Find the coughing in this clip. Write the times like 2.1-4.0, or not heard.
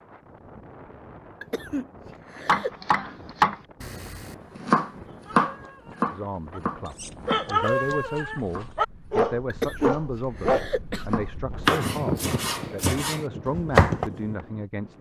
1.4-2.7, 9.4-11.1.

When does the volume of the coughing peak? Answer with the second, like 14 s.
10 s.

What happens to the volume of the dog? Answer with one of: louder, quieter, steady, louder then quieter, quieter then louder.
louder.